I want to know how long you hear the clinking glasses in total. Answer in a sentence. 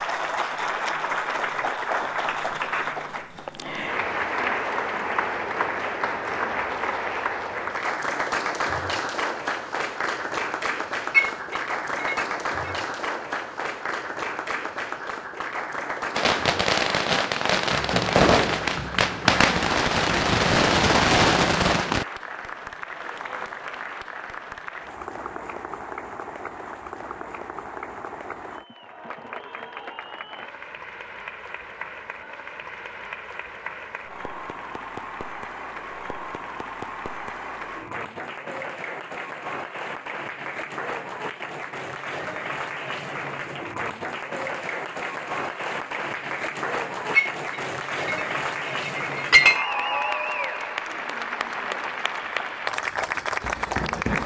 You can hear the clinking glasses for 4 seconds altogether.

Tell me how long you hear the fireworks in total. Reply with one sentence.
You can hear the fireworks for 6 seconds altogether.